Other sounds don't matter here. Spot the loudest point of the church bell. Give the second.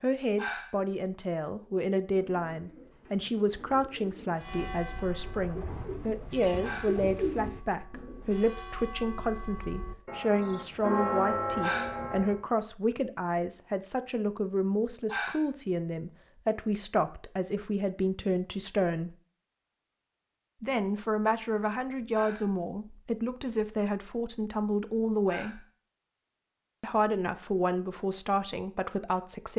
11 s.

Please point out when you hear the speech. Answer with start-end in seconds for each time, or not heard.
0.0-19.1, 20.6-25.6, 26.8-29.5.